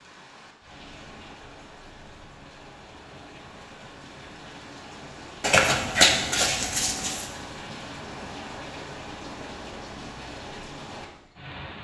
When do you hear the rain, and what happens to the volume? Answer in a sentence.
The rain can be heard from 0.0 to 11.7 s, getting louder.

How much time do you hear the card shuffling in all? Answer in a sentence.
You can hear the card shuffling for 2 seconds altogether.